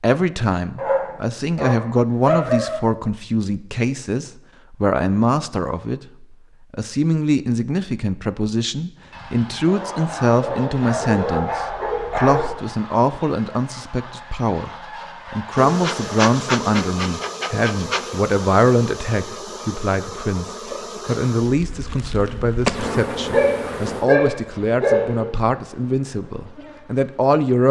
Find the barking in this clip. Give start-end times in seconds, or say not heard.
0.8-2.8, 9.7-12.5, 23.3-25.3.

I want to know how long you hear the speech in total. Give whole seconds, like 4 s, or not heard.
27 s.